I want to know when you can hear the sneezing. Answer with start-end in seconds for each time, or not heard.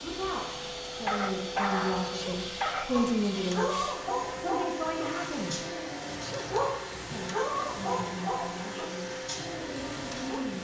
2.0-2.5, 6.0-6.5.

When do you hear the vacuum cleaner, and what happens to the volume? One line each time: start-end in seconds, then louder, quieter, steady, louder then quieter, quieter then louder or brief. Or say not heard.
0.0-10.5 steady.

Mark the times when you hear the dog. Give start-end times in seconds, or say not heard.
1.1-10.4.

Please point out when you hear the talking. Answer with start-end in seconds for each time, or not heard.
0.0-5.7, 7.1-10.5.